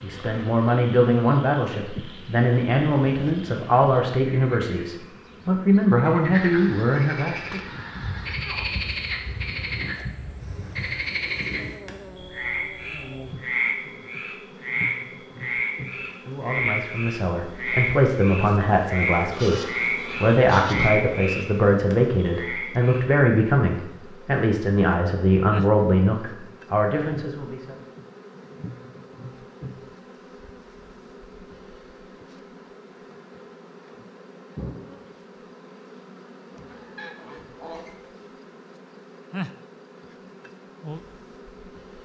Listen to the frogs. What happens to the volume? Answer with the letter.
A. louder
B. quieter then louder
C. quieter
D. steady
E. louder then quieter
A.